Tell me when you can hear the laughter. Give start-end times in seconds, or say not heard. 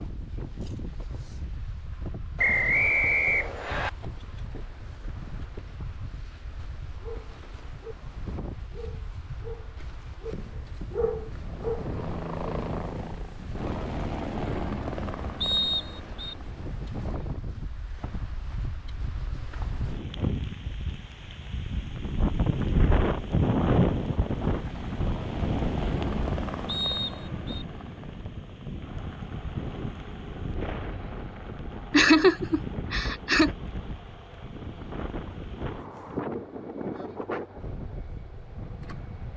31.9-33.5.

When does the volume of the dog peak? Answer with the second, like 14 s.
11 s.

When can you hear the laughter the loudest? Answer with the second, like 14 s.
32 s.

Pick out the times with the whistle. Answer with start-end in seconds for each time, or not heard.
2.4-3.9, 15.4-16.4, 26.6-27.6.